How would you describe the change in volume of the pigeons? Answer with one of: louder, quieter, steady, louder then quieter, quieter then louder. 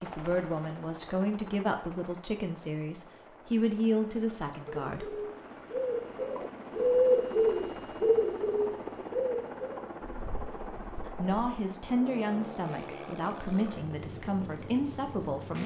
louder then quieter.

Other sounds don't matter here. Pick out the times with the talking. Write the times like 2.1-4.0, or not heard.
0.0-5.2, 11.2-15.6.